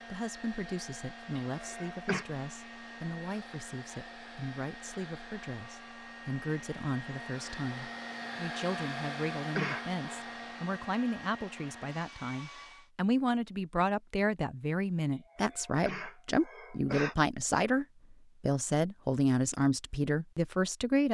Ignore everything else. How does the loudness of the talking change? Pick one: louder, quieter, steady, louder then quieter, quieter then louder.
louder.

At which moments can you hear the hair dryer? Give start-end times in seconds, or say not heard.
0.0-12.9.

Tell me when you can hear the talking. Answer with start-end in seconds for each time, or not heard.
0.1-21.0.